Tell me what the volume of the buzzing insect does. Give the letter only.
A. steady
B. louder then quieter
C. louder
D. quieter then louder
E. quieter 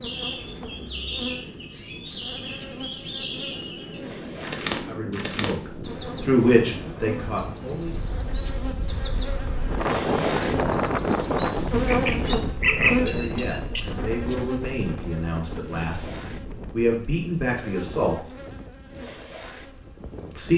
B.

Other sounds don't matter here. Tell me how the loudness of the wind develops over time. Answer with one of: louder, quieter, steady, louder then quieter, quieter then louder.
louder then quieter.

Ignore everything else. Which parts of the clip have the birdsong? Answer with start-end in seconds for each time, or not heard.
0.0-13.8.